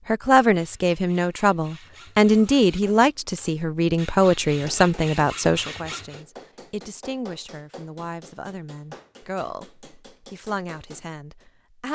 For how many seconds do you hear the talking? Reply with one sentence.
You can hear the talking for 12 seconds altogether.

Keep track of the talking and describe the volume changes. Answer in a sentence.
The loudness of the talking goes down.